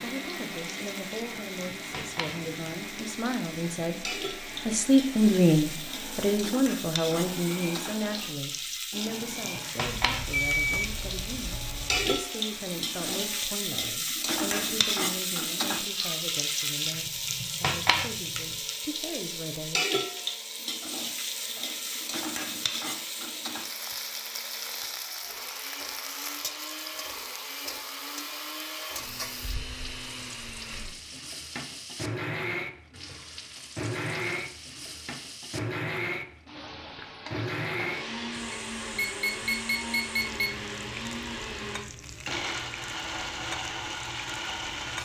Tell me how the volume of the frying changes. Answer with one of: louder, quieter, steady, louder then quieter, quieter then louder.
louder then quieter.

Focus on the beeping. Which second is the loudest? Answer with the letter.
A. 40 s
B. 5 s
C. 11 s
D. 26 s
C.